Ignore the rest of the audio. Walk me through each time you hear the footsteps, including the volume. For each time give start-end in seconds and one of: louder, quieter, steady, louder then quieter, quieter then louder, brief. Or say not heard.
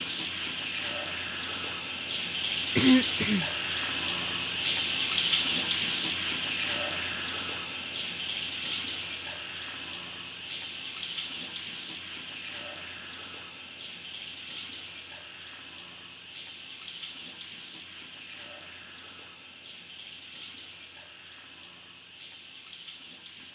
not heard.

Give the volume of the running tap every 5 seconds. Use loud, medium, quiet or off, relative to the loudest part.
loud, loud, medium, quiet, quiet.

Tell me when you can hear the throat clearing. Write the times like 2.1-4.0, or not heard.
2.8-3.5.